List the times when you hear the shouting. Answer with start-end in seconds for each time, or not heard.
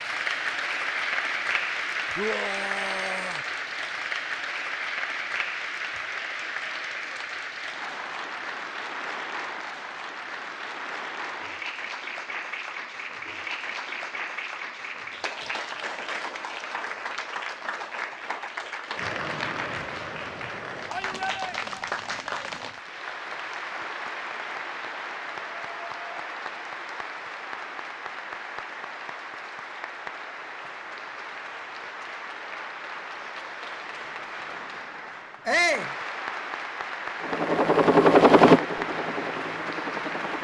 2.1-3.5, 20.9-21.9, 35.5-35.9.